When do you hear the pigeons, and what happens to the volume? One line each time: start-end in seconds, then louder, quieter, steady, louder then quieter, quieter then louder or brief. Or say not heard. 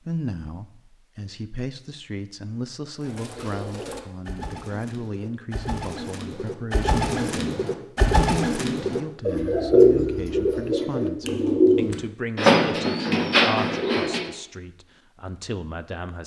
3.0-14.3 louder.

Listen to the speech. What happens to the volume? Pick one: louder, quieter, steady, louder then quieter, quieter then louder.
steady.